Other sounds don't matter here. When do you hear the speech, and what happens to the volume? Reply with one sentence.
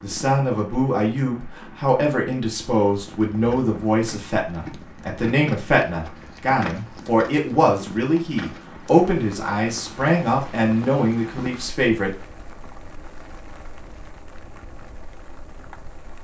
You can hear the speech from 0.0 to 12.2 s, at a steady volume.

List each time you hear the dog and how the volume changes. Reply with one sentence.
You can't hear the dog here.